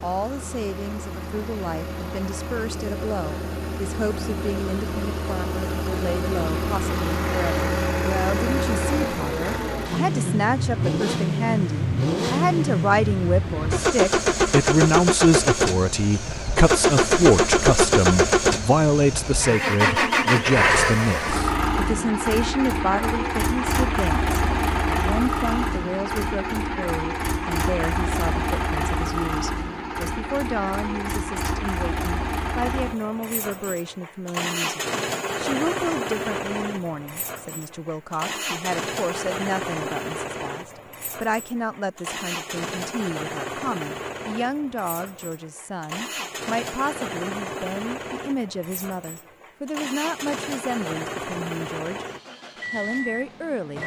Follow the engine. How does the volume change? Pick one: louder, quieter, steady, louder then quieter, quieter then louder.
louder then quieter.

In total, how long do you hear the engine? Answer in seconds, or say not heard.
54 s.